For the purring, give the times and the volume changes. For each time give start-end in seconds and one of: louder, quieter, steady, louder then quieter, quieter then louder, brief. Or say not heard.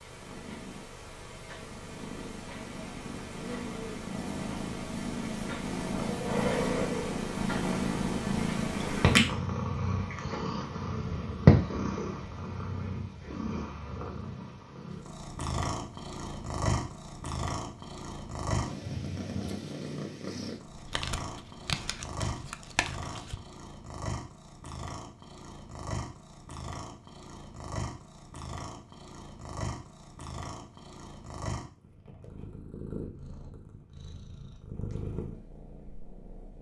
0.0-36.5 louder then quieter.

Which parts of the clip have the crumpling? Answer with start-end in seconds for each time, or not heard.
20.6-23.4.